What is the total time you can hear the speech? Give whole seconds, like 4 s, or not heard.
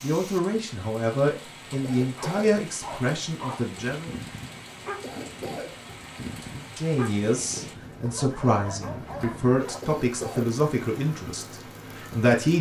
10 s.